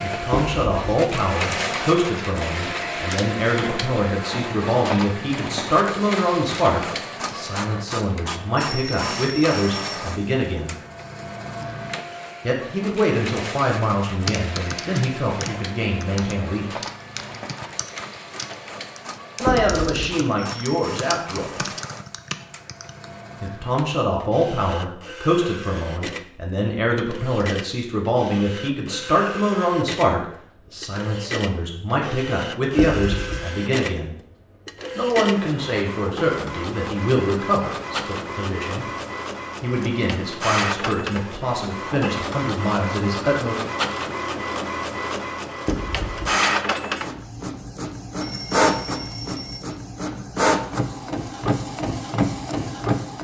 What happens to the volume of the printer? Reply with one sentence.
The volume of the printer goes down, then up.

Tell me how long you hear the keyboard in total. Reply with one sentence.
The keyboard can be heard for 9 seconds in total.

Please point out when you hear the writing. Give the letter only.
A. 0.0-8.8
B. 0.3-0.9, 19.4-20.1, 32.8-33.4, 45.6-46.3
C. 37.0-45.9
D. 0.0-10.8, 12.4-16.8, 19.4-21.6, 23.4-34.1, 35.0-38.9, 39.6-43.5
B.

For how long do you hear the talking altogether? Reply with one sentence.
You can hear the talking for 36 seconds altogether.